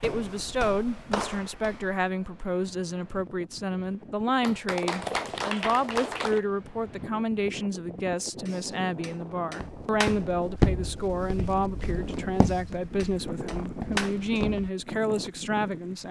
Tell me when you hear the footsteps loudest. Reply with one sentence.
The volume of the footsteps peaks at 11 seconds.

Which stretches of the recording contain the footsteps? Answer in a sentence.
The footsteps can be heard from 0.0 to 2.1 s and from 9.6 to 14.7 s.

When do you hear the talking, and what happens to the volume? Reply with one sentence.
The talking can be heard from 0.0 to 16.0 s, at a steady volume.